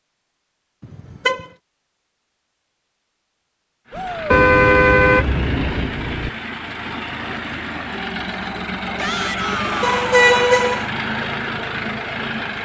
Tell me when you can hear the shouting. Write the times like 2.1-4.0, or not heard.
3.9-4.4, 8.9-10.5.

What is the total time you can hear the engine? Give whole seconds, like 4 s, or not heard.
9 s.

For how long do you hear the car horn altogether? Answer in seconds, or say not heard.
4 s.